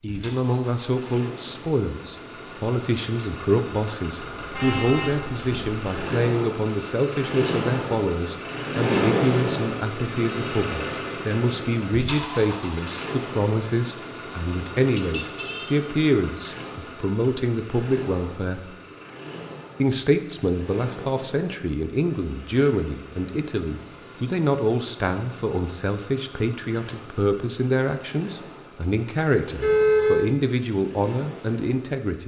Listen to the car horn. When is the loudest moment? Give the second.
30 s.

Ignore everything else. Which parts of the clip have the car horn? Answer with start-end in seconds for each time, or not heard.
4.3-5.8, 14.9-15.8, 29.6-30.3.